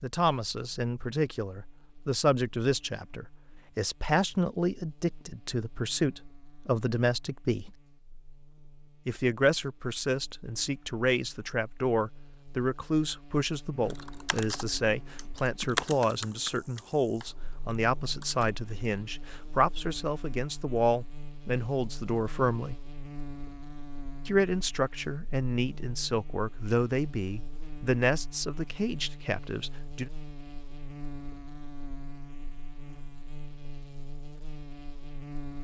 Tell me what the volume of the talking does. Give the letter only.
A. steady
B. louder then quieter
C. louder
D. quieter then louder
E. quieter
A.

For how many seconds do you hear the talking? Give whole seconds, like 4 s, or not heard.
27 s.